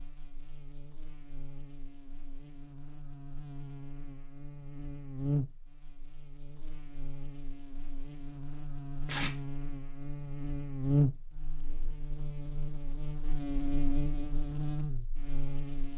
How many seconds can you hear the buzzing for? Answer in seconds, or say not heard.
16 s.